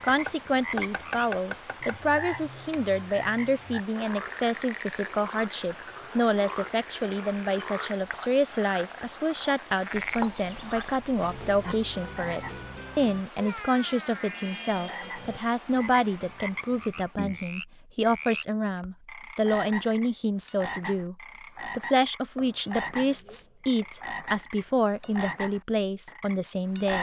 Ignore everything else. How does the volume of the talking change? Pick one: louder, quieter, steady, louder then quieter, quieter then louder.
steady.